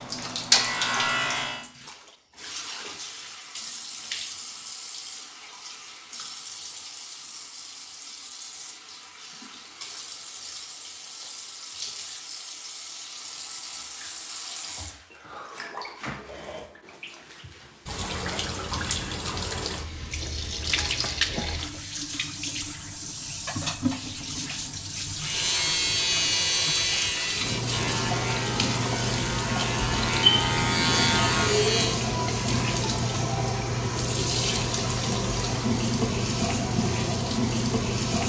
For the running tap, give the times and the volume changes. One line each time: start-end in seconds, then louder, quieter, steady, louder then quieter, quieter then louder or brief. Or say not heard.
0.0-38.2 louder.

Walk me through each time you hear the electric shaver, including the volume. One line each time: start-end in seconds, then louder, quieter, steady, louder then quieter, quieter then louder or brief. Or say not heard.
0.0-1.6 brief
25.1-32.0 quieter then louder.